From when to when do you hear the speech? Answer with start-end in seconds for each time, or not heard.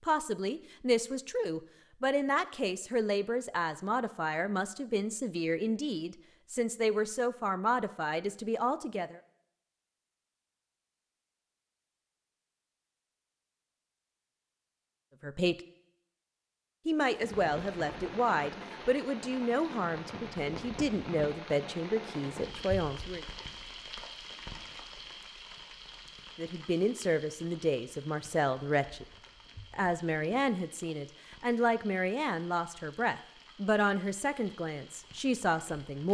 0.1-9.2, 15.2-15.6, 16.9-23.2, 26.4-29.1, 29.7-36.0.